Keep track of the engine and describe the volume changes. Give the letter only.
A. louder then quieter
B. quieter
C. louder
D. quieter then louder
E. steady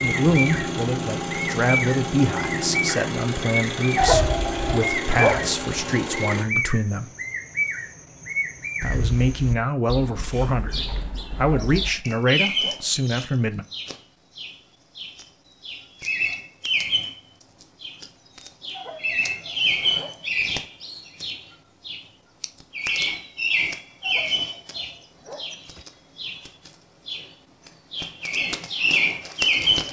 E.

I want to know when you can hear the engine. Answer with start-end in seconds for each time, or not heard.
0.0-6.5.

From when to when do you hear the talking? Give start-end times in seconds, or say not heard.
0.0-7.1, 8.8-13.7.